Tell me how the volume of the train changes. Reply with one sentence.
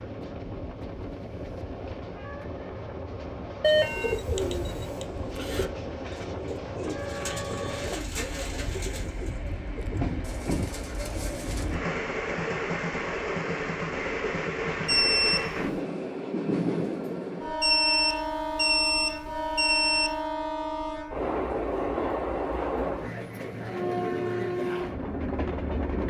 The volume of the train goes up.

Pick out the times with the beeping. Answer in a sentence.
The beeping can be heard from 3.6 to 5.0 s, from 14.8 to 15.6 s and from 17.6 to 20.2 s.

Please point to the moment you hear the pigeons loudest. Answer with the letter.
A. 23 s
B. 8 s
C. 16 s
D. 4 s
D.